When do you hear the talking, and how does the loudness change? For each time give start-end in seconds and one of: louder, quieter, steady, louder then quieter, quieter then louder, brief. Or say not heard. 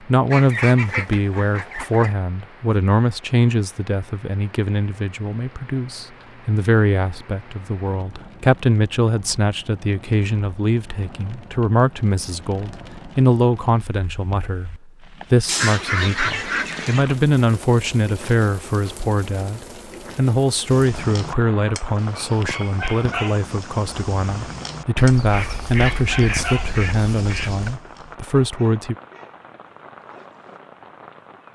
0.1-28.9 steady.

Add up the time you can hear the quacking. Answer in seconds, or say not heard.
6 s.